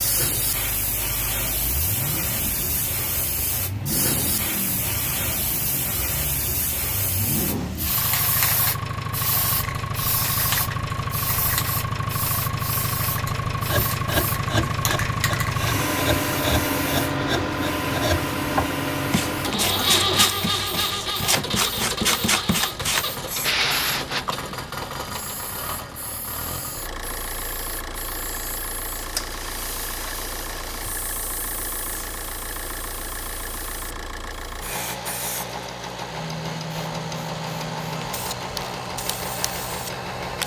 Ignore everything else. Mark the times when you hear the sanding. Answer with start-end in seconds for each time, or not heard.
13.6-24.2.